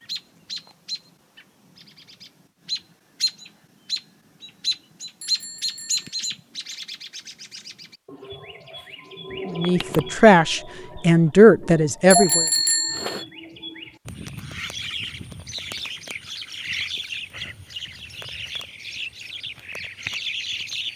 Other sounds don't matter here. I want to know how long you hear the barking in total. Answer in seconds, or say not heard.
not heard.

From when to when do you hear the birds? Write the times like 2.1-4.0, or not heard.
0.0-20.9.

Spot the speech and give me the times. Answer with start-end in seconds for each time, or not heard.
9.4-12.4.